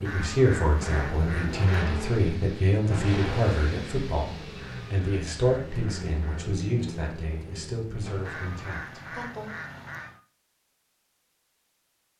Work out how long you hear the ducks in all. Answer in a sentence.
The ducks can be heard for 6 seconds in total.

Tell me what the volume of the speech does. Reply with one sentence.
The loudness of the speech goes down.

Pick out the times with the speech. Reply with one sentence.
You can hear the speech from 0.0 to 9.6 s.